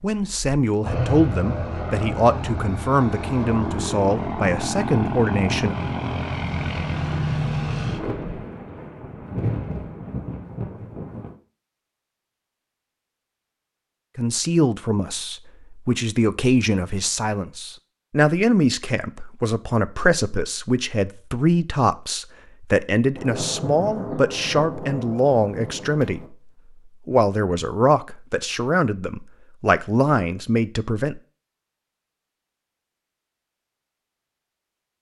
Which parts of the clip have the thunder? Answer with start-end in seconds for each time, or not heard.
7.7-11.3, 23.1-26.3.